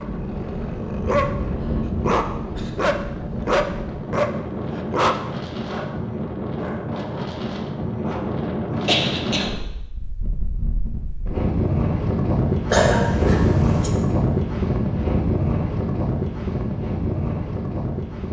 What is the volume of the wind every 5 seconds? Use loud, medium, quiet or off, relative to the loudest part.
medium, medium, loud, loud.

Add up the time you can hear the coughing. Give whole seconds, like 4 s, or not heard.
4 s.